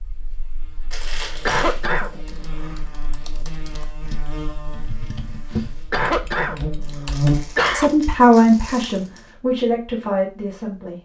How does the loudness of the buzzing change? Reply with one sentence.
The loudness of the buzzing goes up.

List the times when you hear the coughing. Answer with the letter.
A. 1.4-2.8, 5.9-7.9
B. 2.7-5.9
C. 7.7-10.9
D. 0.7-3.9
A.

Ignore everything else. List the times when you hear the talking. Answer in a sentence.
The talking can be heard from 7.7 to 10.9 s.